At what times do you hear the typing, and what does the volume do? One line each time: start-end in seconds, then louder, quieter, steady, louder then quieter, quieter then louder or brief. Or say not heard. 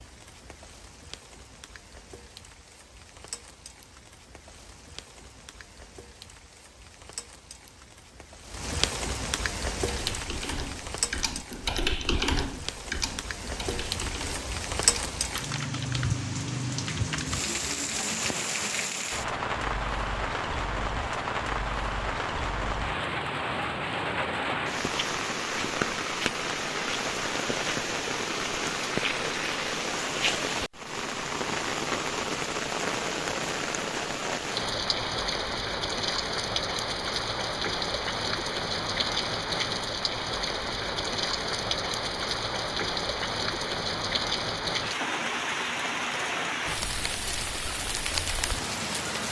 9.9-17.4 louder then quieter.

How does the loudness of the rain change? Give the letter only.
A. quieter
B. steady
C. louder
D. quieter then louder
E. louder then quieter
C.